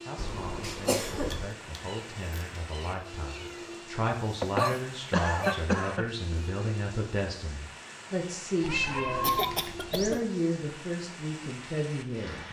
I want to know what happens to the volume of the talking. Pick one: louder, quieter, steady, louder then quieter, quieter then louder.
louder.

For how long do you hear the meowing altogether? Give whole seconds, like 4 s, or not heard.
4 s.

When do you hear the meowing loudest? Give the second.
9 s.